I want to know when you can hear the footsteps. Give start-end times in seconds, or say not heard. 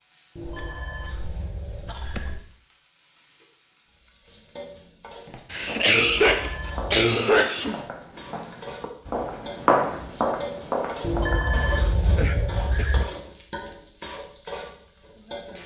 5.2-11.4.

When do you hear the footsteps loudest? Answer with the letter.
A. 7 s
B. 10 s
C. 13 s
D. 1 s
B.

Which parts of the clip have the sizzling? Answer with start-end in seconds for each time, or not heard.
0.0-15.6.